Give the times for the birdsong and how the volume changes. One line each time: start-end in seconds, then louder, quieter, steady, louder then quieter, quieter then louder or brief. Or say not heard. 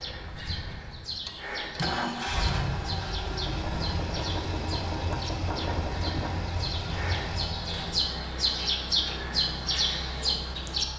0.0-10.8 louder.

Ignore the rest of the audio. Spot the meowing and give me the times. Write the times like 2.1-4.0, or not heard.
not heard.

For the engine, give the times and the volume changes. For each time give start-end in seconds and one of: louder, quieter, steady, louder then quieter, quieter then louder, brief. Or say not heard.
0.0-10.9 quieter.